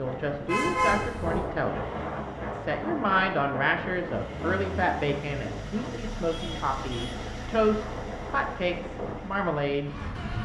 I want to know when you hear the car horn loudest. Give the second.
1 s.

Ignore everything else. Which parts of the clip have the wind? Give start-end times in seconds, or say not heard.
0.0-10.4.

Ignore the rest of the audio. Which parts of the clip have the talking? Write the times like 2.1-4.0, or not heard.
0.0-10.4.